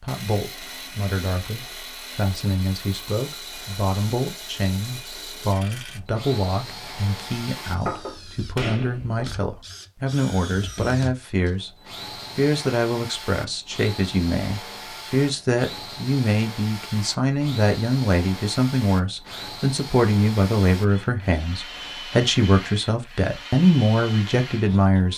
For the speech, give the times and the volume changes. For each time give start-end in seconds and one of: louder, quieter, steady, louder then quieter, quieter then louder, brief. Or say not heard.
0.0-25.1 louder.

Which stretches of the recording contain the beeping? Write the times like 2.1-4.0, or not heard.
not heard.